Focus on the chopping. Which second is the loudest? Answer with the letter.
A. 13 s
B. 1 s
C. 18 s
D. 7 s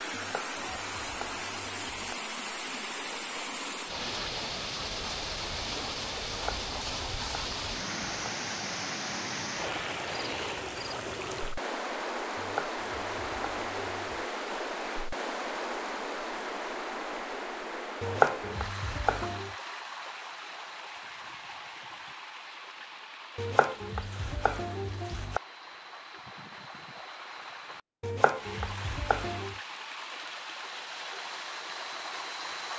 C.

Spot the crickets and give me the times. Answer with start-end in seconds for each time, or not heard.
not heard.